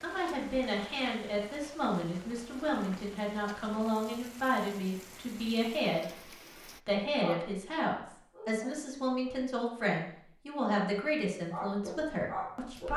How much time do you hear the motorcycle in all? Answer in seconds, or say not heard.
not heard.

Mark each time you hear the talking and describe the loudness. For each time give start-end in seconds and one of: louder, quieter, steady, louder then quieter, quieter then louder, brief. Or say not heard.
0.0-12.9 steady.